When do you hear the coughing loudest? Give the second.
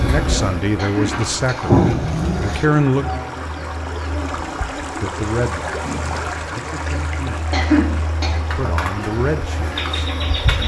8 s.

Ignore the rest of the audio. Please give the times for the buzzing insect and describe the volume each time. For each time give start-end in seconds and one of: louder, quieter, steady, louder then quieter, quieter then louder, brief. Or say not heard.
0.0-10.6 quieter then louder.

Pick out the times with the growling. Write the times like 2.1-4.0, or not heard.
1.0-2.6, 5.7-6.3.